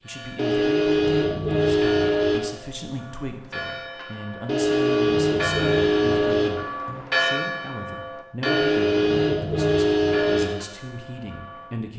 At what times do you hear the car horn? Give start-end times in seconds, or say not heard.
0.3-2.4, 4.5-6.5, 8.4-10.4.